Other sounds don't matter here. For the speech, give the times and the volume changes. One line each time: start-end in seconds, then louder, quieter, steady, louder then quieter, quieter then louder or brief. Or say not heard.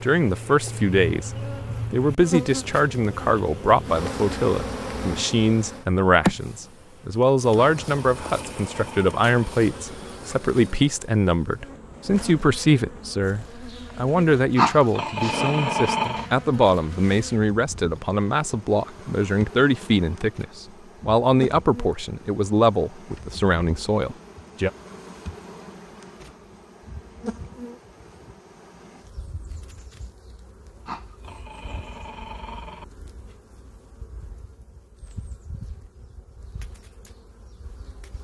0.0-1.3 brief
1.9-24.7 steady.